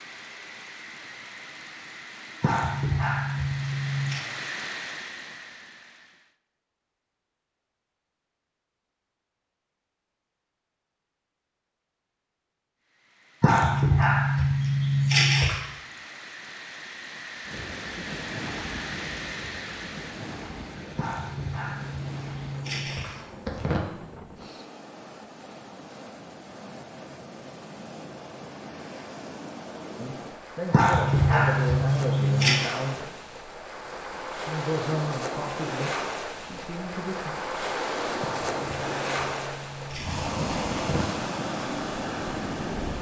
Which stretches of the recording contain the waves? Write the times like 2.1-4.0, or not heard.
17.4-42.9.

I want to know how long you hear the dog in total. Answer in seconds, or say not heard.
12 s.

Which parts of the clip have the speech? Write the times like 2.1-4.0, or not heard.
29.9-33.2, 34.5-37.4.